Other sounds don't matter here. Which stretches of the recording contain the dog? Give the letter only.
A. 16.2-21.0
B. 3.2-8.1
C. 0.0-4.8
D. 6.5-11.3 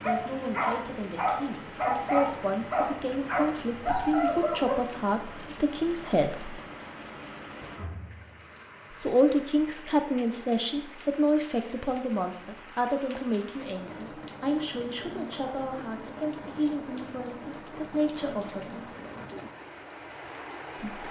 C.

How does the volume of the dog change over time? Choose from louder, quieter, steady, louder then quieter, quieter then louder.
steady.